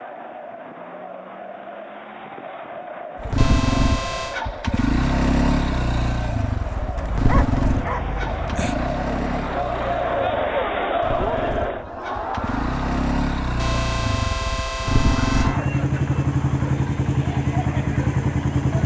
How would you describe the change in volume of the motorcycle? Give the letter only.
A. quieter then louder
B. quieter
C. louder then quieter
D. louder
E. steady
A.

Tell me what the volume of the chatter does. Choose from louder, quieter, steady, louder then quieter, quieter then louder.
louder then quieter.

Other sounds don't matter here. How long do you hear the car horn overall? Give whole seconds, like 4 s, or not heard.
3 s.